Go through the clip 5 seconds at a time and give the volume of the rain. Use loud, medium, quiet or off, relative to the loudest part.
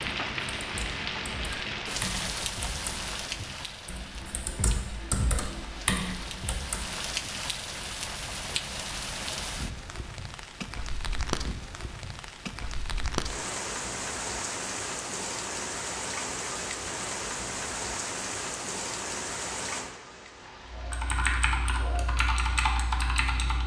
loud, loud, loud, loud, quiet.